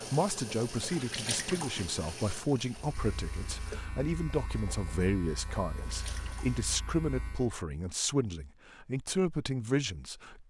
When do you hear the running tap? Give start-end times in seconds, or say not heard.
0.0-6.7.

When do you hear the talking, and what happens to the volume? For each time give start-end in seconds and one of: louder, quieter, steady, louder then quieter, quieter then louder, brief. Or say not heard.
0.0-10.4 steady.